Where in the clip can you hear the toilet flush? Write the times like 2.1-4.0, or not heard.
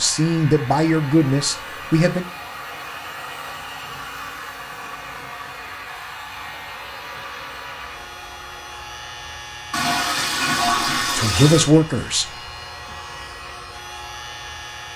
9.7-11.7.